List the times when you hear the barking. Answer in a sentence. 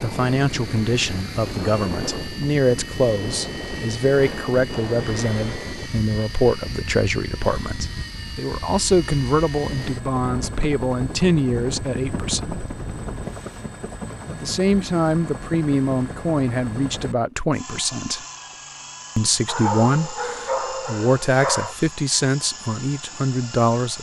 You can hear the barking from 19.4 to 21.8 s.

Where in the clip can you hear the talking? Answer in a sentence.
The talking can be heard from 0.0 to 12.7 s, from 14.2 to 18.2 s and from 19.1 to 23.9 s.